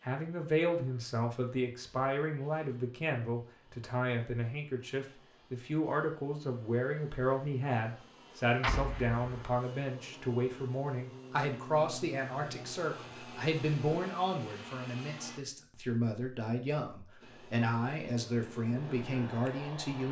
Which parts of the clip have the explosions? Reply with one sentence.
You can hear the explosions from 8.6 to 9.4 s.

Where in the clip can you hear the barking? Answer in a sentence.
The barking can't be heard in this clip.